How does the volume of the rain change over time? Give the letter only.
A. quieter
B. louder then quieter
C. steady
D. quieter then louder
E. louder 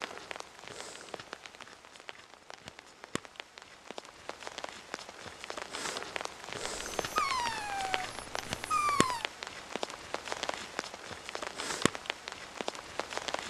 E.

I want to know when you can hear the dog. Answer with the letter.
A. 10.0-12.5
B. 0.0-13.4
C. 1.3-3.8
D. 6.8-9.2
D.